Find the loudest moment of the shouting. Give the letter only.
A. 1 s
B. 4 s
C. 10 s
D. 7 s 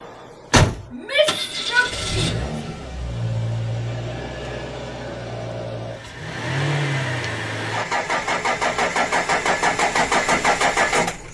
A.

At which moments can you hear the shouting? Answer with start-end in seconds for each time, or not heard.
0.9-2.5.